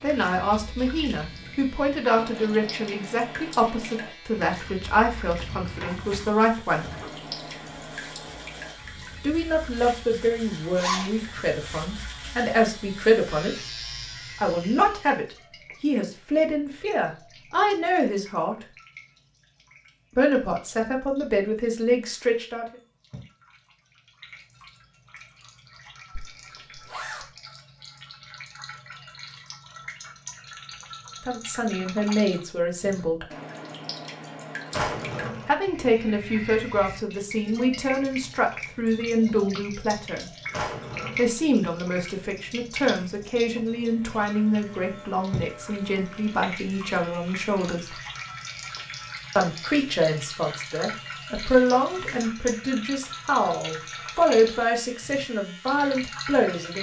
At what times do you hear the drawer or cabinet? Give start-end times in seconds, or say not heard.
5.2-7.0, 34.7-35.5, 40.5-41.4.